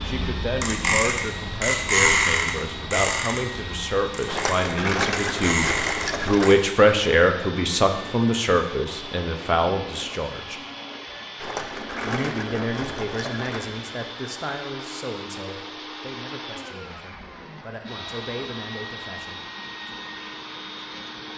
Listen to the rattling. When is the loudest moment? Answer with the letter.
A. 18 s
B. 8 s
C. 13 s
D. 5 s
D.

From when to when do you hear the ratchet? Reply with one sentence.
You can hear the ratchet from 0.0 to 6.5 s.